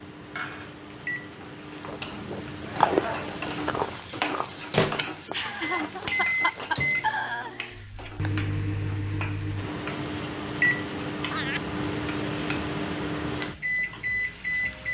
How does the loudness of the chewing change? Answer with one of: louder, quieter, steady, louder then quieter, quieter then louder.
quieter.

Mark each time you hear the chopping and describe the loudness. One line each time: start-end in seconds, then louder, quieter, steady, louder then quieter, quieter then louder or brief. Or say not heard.
not heard.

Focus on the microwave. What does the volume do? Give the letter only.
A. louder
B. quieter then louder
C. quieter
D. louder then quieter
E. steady
A.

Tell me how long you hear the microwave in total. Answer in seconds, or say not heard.
15 s.